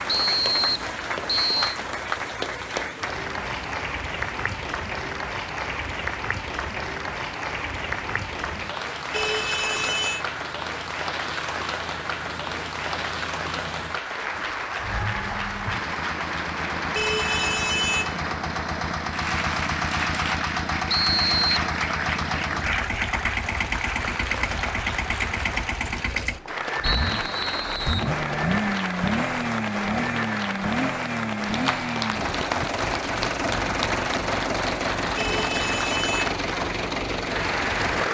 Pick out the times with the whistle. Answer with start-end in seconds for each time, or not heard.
0.1-1.8, 20.9-21.6, 26.8-28.1.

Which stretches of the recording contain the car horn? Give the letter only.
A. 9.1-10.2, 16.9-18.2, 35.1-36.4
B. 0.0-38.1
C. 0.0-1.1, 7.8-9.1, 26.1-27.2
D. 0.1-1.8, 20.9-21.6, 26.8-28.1
A.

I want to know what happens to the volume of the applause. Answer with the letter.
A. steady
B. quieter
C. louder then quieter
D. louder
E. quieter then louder
A.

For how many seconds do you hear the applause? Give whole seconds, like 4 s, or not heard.
38 s.